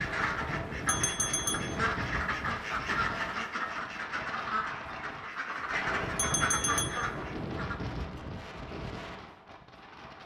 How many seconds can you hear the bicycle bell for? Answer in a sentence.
You can hear the bicycle bell for 2 seconds altogether.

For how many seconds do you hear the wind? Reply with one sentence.
The wind can be heard for 10 seconds in total.